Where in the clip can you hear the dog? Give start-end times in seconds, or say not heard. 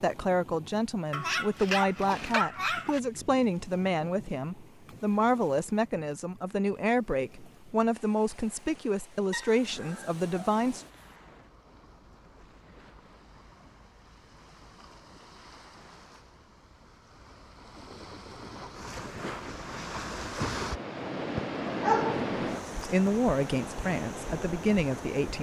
1.1-3.0, 9.3-11.1, 21.8-23.1.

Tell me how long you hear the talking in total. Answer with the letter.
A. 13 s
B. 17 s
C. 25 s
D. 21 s
A.